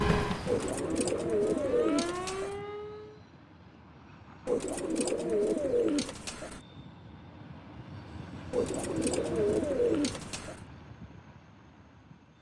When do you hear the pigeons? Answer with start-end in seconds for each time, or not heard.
0.5-2.5, 4.5-6.6, 8.5-10.6.